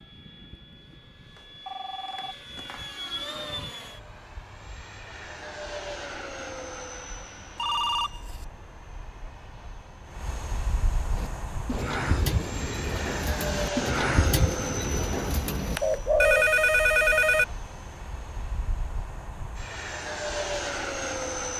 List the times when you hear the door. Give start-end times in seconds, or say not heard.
not heard.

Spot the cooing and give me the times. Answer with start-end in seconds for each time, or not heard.
11.2-16.4.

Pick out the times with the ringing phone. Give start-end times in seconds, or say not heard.
1.4-2.9, 7.5-8.4, 15.8-17.4.